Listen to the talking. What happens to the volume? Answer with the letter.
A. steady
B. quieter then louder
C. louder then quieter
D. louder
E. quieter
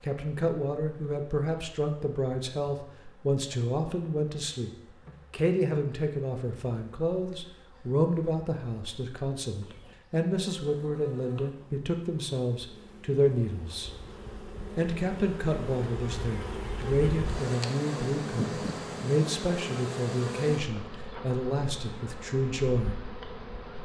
A.